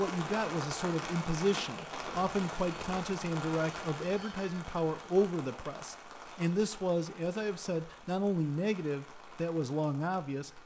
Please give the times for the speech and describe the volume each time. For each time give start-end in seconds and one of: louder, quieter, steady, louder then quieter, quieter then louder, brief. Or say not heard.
0.0-10.6 steady.